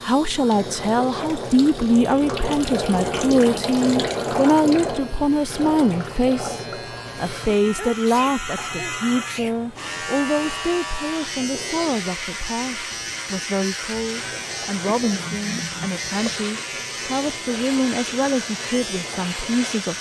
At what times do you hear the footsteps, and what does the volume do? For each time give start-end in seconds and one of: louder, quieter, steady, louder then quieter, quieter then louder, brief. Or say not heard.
not heard.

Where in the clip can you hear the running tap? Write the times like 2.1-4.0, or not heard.
0.1-19.9.